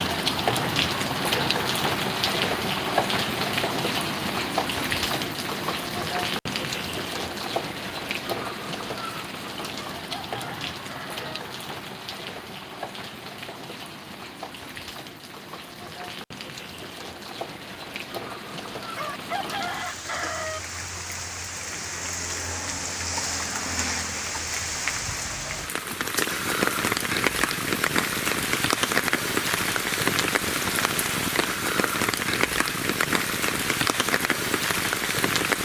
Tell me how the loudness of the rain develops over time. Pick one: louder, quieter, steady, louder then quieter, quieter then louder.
quieter then louder.